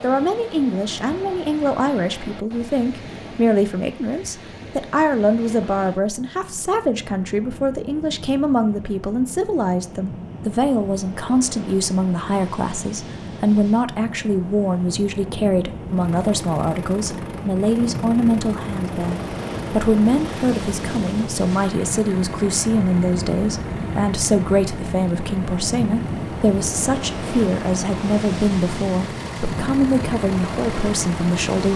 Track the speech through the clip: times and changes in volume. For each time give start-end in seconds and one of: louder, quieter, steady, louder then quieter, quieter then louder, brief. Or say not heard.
0.0-31.7 steady.